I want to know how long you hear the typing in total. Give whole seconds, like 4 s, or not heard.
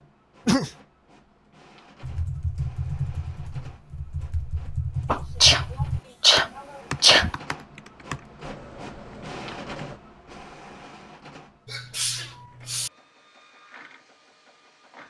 8 s.